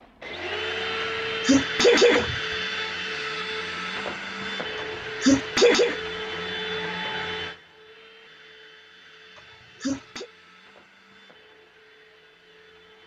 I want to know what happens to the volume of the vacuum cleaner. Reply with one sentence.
The loudness of the vacuum cleaner goes down.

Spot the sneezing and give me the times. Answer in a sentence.
The sneezing can be heard from 1.0 to 2.5 s, from 4.8 to 6.0 s and from 9.3 to 10.3 s.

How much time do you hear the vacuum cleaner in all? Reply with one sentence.
The vacuum cleaner can be heard for 13 seconds in total.